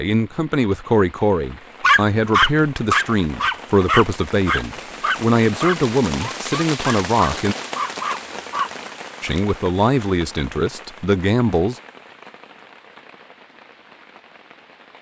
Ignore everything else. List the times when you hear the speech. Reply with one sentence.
You can hear the speech from 0.0 to 7.5 s and from 9.2 to 11.8 s.